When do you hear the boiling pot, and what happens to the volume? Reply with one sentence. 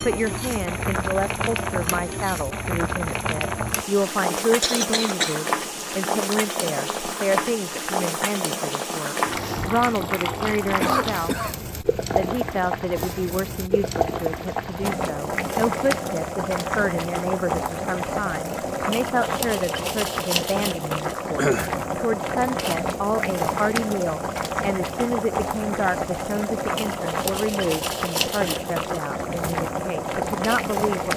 You can hear the boiling pot from 0.0 to 31.1 s, at a steady volume.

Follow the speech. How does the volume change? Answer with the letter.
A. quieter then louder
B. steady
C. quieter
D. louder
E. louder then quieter
B.